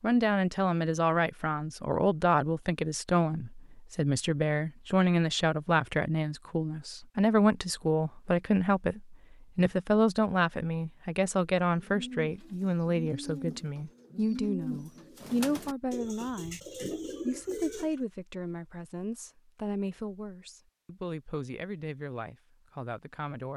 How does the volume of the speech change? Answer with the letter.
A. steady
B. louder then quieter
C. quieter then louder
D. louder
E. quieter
E.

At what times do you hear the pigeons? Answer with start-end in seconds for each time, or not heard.
11.7-17.9.